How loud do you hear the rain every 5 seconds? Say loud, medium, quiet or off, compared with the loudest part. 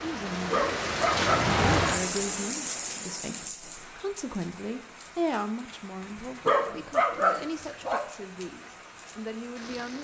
loud, quiet.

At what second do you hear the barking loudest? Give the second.
7 s.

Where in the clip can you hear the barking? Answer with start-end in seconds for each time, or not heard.
0.5-1.5, 6.5-8.0.